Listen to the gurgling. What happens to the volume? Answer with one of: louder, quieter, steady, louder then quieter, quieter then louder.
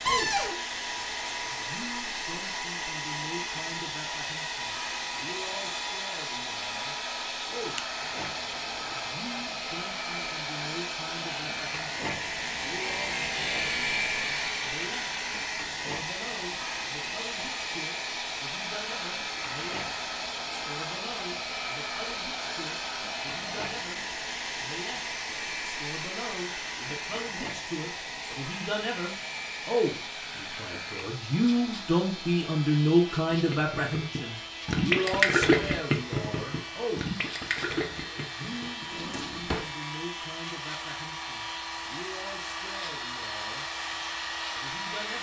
louder then quieter.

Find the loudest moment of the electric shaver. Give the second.
14 s.